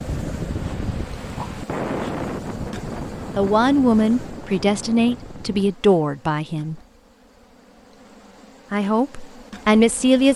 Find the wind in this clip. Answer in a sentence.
The wind can be heard from 0.0 to 5.8 s.